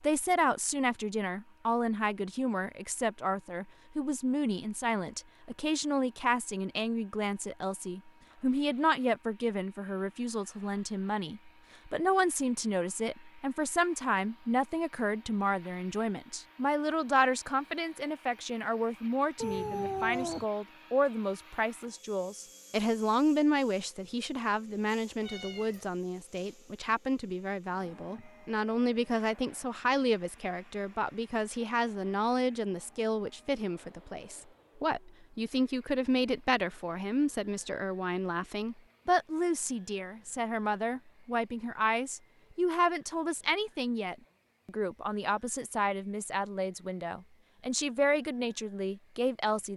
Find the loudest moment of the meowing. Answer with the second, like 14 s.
20 s.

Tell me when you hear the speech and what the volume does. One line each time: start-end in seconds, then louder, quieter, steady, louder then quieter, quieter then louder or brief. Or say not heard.
0.0-49.7 steady.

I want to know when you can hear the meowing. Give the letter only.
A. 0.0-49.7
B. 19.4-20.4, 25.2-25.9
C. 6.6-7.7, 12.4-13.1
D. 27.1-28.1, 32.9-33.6
B.